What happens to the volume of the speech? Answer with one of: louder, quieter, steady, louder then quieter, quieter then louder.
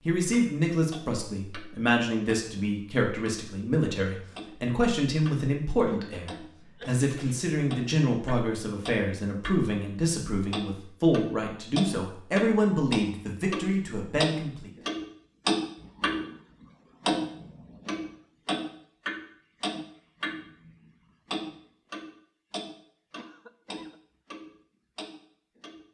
steady.